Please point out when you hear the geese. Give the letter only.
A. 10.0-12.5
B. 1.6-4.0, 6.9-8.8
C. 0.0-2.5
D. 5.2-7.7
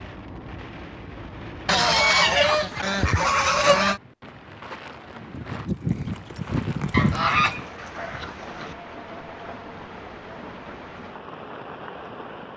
B.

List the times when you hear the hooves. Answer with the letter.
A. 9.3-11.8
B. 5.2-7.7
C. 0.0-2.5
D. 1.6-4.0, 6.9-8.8
B.